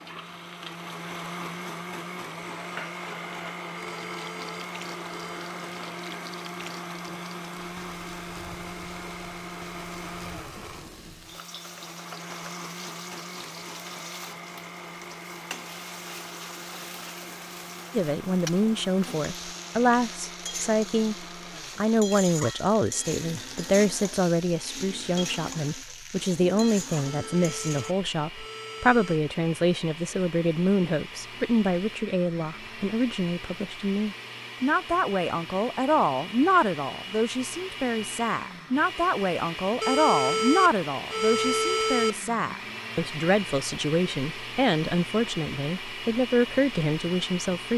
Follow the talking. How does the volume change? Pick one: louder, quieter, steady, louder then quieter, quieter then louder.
steady.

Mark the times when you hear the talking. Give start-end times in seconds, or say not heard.
17.9-47.7.